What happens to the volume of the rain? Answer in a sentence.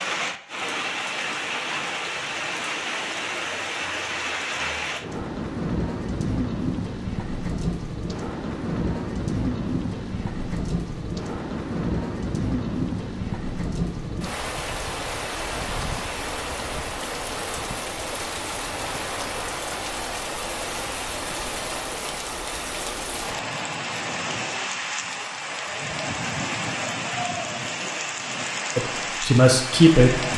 The loudness of the rain stays about the same.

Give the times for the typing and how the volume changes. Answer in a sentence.
You can't hear the typing here.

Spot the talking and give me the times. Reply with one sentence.
You can hear the talking from 28.8 to 30.3 s.